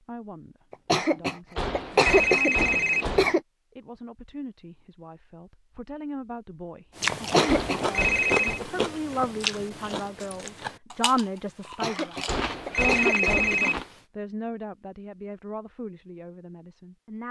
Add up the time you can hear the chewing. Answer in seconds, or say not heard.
7 s.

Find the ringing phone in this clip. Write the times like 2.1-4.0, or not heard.
1.6-3.4, 7.5-8.6, 12.2-13.8.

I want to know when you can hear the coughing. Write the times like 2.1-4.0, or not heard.
0.7-3.4, 7.2-7.8, 11.7-13.7.